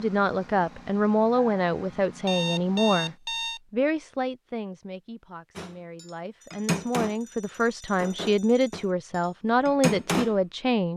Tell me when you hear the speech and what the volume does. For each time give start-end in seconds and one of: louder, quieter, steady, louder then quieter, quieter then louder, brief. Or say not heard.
0.0-10.9 quieter then louder.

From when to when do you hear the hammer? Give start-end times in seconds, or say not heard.
5.5-7.2, 8.0-10.3.